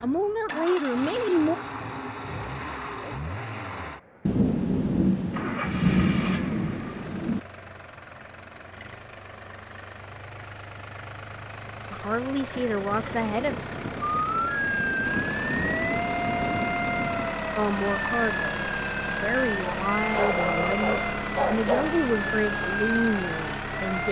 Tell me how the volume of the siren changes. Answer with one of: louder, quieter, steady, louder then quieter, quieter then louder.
steady.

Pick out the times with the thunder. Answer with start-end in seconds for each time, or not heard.
4.2-7.4, 12.6-17.4.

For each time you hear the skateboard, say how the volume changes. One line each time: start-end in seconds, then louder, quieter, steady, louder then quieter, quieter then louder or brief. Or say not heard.
not heard.